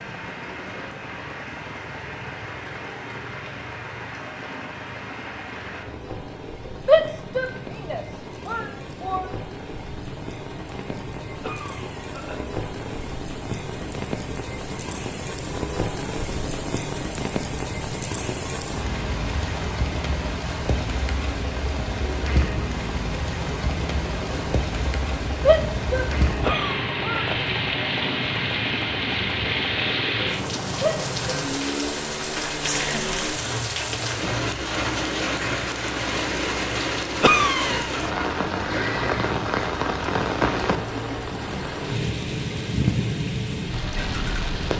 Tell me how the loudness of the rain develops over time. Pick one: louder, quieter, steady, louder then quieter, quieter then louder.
louder.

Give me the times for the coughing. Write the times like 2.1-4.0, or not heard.
11.4-12.4, 26.4-27.4, 37.2-38.0.